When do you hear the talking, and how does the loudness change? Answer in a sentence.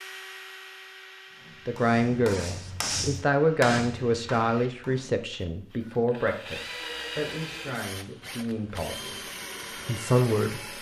The talking can be heard from 1.6 to 9.2 s, getting quieter; and briefly from 9.8 to 10.6 s.